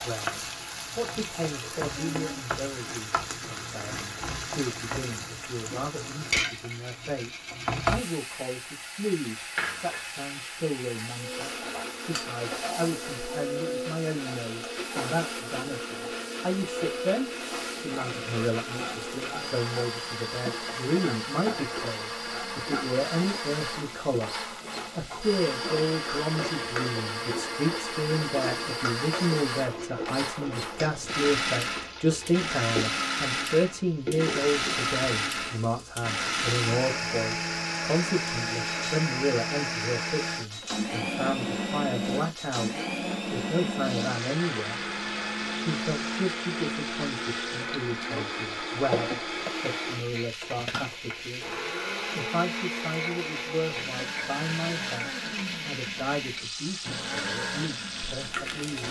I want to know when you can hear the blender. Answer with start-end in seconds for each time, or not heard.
11.2-58.8.